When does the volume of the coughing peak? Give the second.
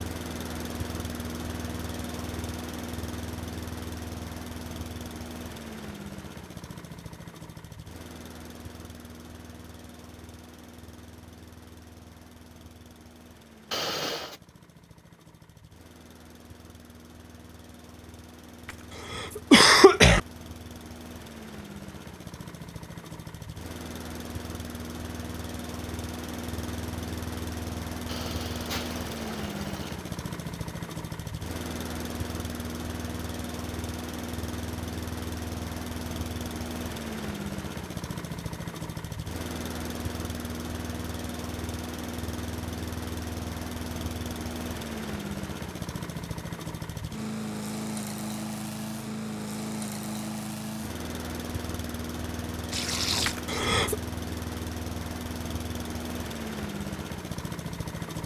20 s.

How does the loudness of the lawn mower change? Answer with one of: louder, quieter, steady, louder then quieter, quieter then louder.
quieter then louder.